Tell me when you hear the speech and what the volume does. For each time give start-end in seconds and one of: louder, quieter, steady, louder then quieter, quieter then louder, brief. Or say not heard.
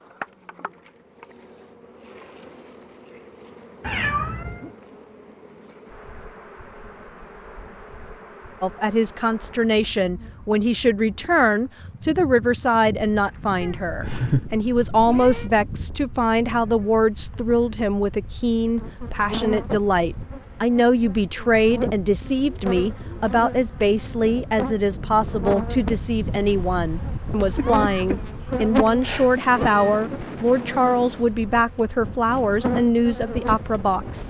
8.6-34.2 steady.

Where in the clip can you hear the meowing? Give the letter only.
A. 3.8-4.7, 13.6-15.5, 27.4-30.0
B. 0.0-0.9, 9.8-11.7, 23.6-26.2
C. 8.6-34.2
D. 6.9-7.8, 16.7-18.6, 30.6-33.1
A.